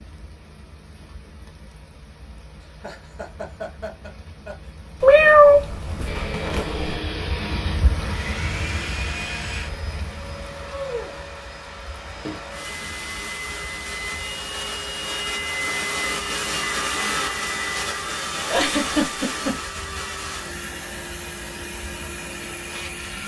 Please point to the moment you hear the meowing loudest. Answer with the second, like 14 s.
5 s.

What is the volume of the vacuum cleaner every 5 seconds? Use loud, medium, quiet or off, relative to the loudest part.
off, medium, medium, loud, medium.